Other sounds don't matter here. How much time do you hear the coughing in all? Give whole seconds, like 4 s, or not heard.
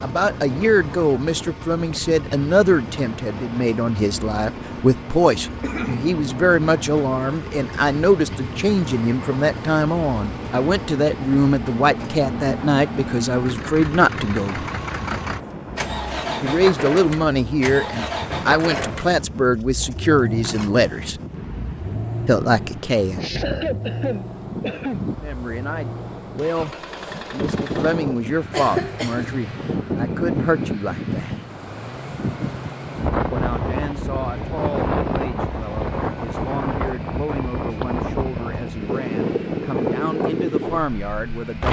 3 s.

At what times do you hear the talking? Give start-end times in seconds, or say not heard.
0.0-14.7, 16.4-21.1, 22.2-23.2, 25.2-31.4, 33.3-41.6.